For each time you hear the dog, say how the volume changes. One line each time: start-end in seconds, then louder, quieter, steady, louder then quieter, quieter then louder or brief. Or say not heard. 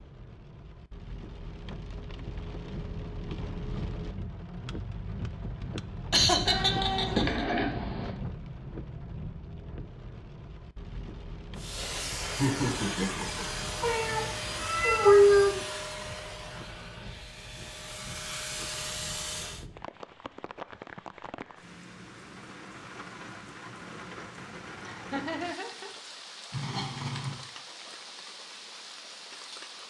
not heard.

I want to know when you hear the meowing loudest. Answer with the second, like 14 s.
15 s.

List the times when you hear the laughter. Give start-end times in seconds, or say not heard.
6.1-7.5, 12.2-13.4, 24.9-25.9.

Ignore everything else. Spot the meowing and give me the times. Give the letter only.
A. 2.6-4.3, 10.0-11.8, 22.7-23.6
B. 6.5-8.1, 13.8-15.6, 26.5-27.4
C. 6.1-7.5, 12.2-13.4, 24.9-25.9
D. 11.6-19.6
B.